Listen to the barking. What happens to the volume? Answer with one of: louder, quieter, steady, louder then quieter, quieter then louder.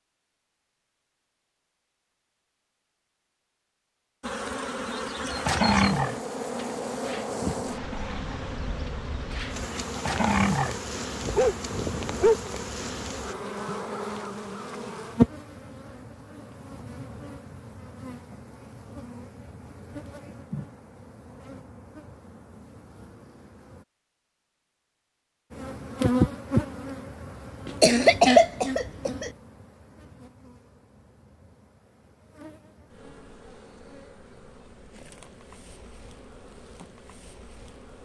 quieter then louder.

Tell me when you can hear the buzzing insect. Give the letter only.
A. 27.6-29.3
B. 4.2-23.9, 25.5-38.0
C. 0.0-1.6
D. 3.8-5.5
B.